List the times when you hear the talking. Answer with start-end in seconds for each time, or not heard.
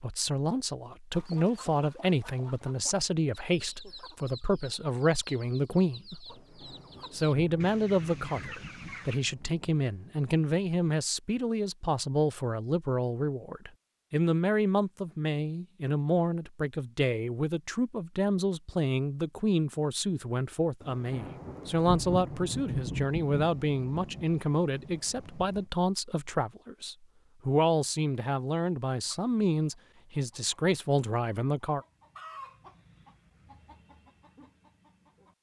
0.0-6.2, 7.1-31.8.